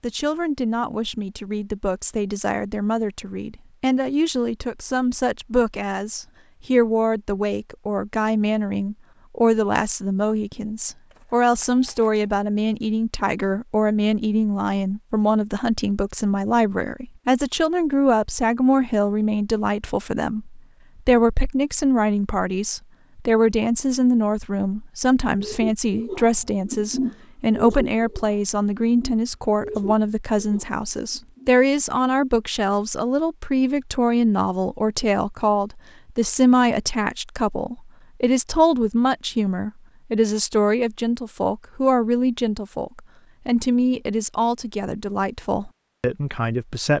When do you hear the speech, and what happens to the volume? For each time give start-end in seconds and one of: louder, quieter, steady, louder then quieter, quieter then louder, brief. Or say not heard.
0.0-46.9 steady.